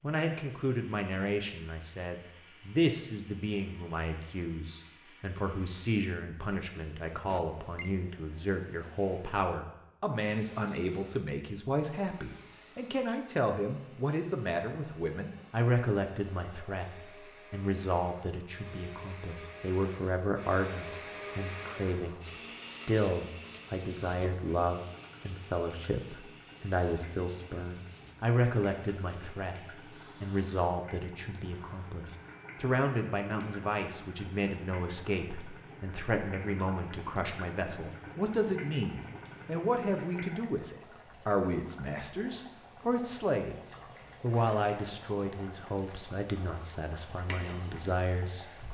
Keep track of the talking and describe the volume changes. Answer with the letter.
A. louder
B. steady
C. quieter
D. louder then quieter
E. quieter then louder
B.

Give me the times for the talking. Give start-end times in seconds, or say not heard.
0.0-48.5.